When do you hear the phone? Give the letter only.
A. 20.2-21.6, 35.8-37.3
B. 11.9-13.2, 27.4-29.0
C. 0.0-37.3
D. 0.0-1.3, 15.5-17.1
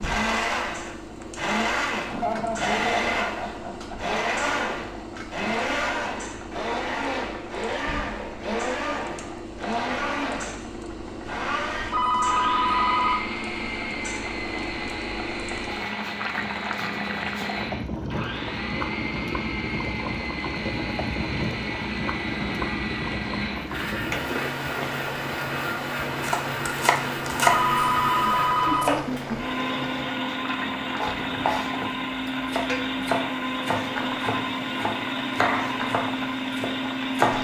B.